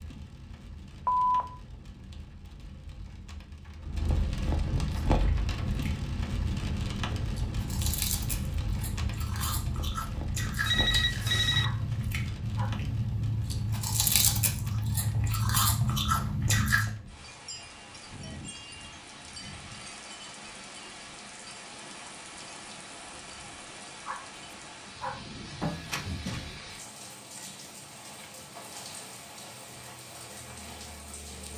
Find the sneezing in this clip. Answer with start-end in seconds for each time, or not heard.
not heard.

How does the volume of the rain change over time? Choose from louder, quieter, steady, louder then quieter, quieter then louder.
quieter.